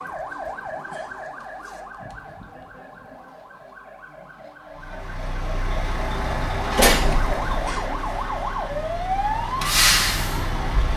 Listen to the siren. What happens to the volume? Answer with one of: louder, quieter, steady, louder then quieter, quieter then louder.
quieter then louder.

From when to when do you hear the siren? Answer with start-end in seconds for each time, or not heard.
0.0-10.9.